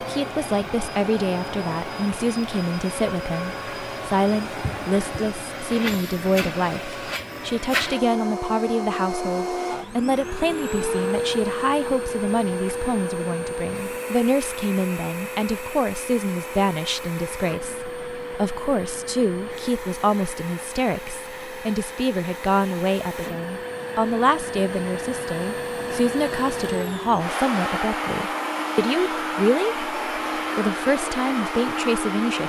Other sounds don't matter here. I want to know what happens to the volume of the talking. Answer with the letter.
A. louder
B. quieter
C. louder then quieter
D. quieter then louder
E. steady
E.